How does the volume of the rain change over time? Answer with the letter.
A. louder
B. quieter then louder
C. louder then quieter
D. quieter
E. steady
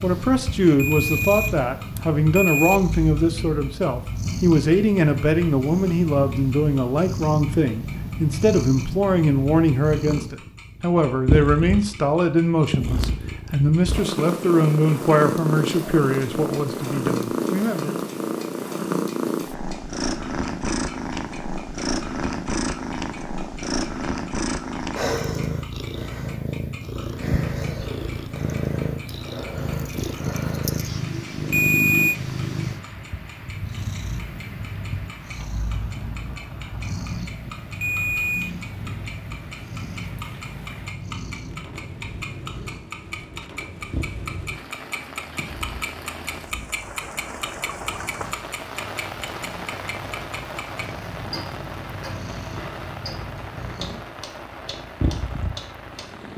A.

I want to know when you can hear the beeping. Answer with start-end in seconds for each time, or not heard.
0.8-2.8, 31.5-32.1, 37.8-38.5.